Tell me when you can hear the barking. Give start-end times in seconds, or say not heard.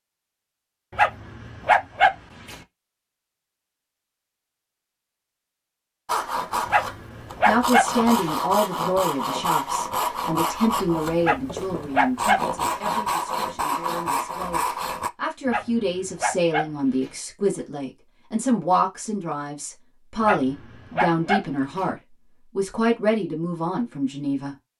0.9-2.5, 6.7-8.3, 11.2-12.4, 15.4-17.1, 20.2-21.9.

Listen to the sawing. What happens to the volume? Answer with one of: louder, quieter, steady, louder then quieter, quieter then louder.
steady.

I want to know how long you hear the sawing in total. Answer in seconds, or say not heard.
9 s.